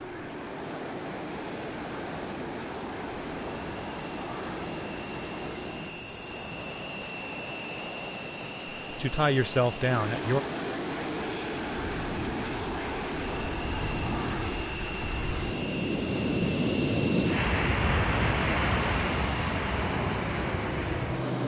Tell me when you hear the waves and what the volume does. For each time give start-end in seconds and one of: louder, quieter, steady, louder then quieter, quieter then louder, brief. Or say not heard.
0.0-21.4 louder.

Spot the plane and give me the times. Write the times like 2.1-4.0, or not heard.
0.0-21.4.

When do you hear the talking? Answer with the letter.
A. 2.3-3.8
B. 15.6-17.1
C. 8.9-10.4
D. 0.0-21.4
C.